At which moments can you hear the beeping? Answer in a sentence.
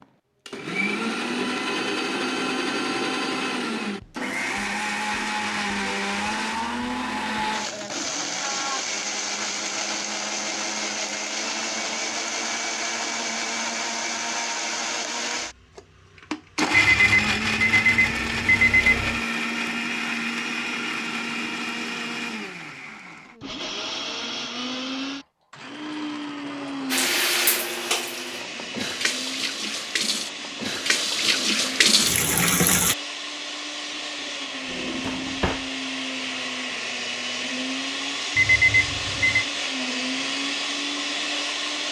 The beeping can be heard from 16.7 to 19.2 s and from 38.4 to 39.5 s.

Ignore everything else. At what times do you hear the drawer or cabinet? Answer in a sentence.
The drawer or cabinet can be heard from 34.6 to 35.7 s.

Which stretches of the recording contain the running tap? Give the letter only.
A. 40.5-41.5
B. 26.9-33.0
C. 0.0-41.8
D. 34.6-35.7
B.